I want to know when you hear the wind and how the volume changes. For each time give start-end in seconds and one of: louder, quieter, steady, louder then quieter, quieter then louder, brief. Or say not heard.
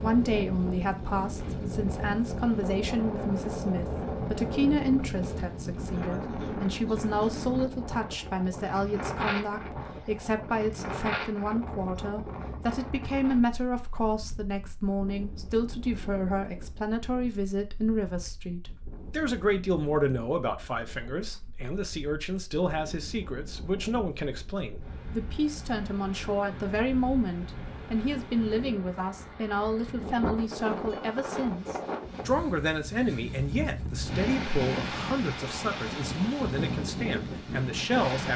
0.0-38.3 quieter then louder.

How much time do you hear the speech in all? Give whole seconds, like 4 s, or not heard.
38 s.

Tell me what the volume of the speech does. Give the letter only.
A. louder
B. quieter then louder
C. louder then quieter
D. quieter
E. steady
E.